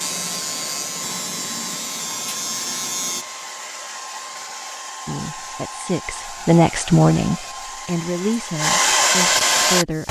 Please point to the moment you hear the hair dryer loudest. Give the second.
9 s.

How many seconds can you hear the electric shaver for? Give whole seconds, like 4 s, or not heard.
3 s.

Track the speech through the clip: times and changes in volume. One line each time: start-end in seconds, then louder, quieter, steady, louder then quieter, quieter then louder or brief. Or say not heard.
5.0-10.0 louder then quieter.